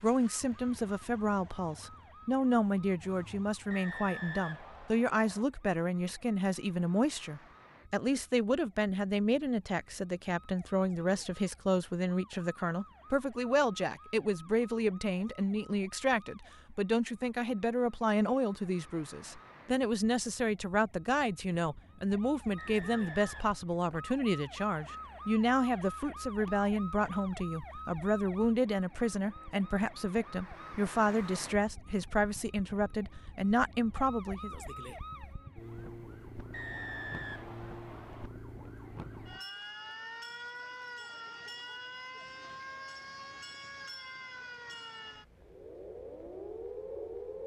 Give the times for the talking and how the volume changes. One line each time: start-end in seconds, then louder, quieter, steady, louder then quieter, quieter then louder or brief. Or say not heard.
0.0-34.5 steady.